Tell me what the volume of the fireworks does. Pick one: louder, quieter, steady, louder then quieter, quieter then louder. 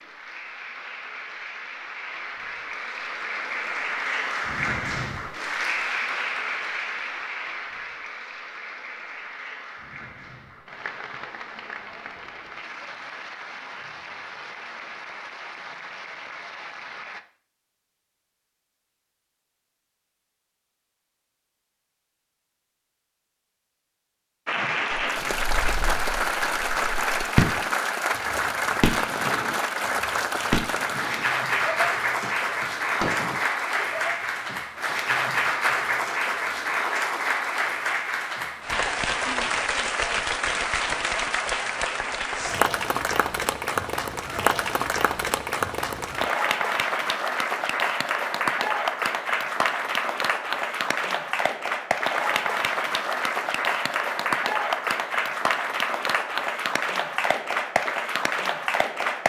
louder then quieter.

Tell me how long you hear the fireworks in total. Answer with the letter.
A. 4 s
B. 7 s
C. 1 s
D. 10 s
D.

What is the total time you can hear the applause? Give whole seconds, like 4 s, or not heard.
52 s.